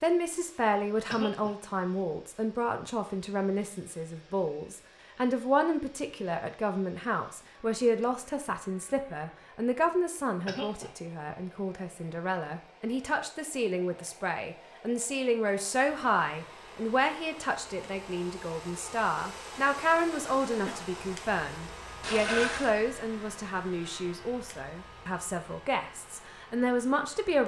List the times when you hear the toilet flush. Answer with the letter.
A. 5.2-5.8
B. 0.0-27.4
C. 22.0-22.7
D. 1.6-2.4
C.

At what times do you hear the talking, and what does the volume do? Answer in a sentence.
The talking can be heard from 0.0 to 27.4 s, at a steady volume.